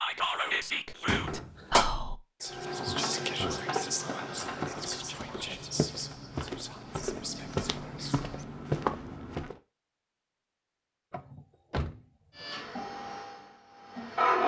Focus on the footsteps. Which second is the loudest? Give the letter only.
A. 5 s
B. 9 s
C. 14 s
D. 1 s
B.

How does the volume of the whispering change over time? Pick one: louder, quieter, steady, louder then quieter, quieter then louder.
quieter.